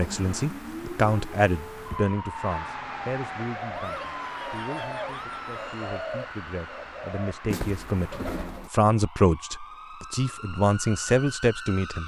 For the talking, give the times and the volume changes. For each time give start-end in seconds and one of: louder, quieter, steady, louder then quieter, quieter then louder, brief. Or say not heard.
0.0-12.0 quieter then louder.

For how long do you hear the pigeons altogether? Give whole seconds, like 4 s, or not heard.
5 s.